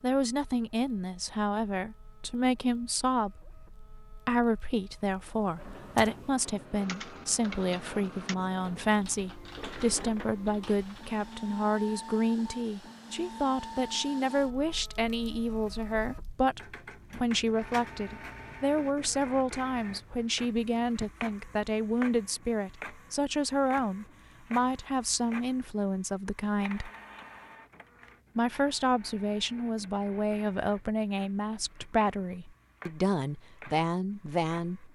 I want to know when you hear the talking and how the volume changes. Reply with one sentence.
The talking can be heard from 0.0 to 26.9 s, at a steady volume; and from 28.4 to 34.8 s, at a steady volume.